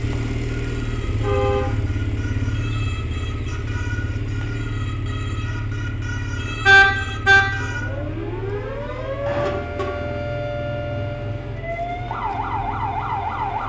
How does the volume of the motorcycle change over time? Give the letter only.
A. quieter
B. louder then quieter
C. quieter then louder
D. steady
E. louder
A.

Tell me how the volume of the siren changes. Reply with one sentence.
The loudness of the siren goes up.